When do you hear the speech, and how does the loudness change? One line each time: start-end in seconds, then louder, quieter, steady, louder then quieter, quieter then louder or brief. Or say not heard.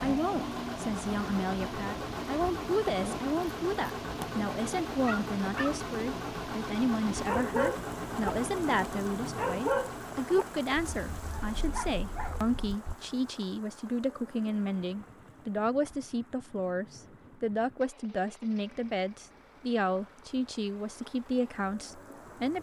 0.0-22.5 steady.